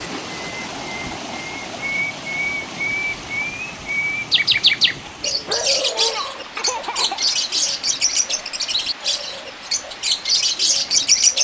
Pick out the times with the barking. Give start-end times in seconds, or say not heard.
5.2-7.5.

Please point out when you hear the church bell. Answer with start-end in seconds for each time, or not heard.
not heard.